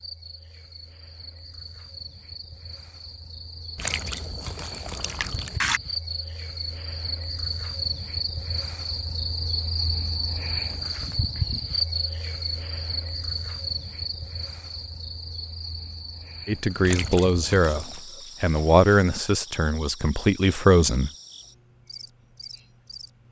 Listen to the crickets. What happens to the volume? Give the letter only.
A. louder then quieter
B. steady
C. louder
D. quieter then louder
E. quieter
A.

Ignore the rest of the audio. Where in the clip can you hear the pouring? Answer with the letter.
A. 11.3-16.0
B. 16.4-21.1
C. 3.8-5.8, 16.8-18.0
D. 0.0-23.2
C.